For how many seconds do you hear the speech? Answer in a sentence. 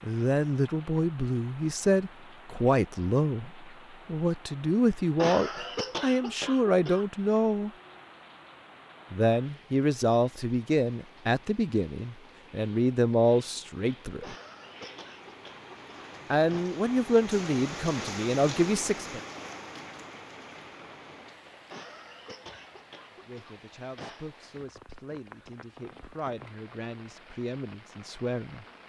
You can hear the speech for 21 seconds altogether.